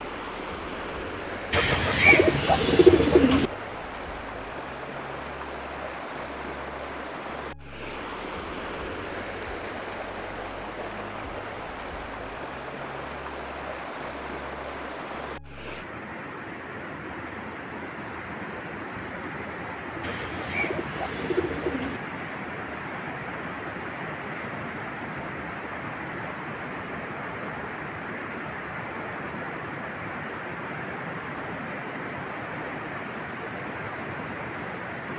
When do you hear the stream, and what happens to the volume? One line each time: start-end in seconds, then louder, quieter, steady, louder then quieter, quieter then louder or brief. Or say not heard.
0.0-35.1 steady.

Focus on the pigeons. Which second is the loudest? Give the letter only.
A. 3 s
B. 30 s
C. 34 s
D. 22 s
A.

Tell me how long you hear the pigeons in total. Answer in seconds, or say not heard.
4 s.